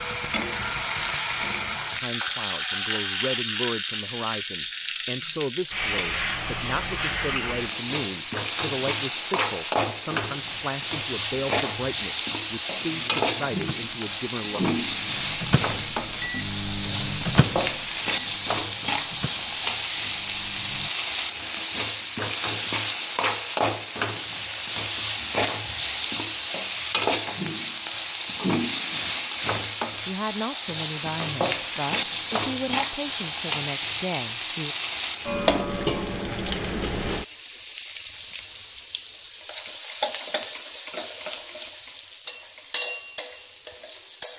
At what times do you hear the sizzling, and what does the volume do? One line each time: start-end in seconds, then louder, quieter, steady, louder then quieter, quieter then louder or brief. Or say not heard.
0.0-44.3 steady.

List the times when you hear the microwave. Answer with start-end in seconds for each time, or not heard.
12.8-20.9.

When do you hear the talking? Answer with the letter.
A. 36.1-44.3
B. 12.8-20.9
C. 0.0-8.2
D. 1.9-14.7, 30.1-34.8
D.